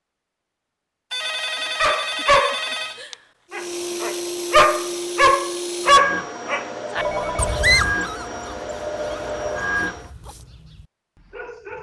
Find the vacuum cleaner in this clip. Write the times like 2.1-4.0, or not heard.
3.5-10.1.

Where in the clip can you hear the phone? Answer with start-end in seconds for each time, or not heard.
1.1-3.0, 7.0-7.6.